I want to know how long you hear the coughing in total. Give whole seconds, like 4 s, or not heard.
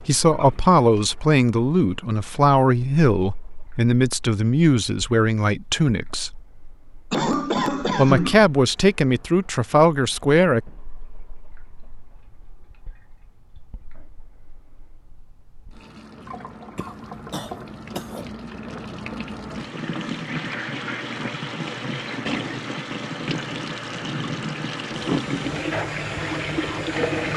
3 s.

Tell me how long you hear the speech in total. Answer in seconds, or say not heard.
9 s.